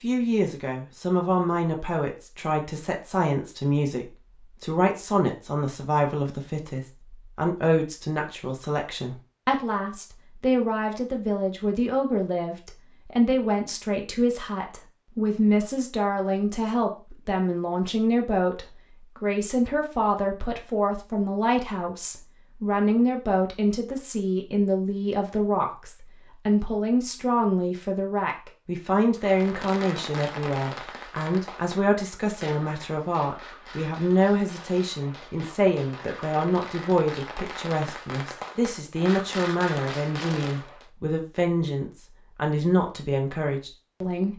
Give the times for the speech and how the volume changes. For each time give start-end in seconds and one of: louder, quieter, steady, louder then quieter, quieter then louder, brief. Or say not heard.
0.0-44.3 steady.